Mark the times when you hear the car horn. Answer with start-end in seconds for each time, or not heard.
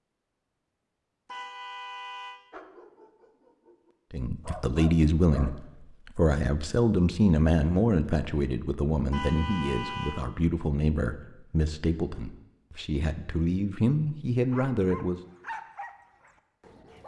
1.2-2.4, 9.1-10.2.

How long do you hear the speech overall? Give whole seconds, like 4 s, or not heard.
11 s.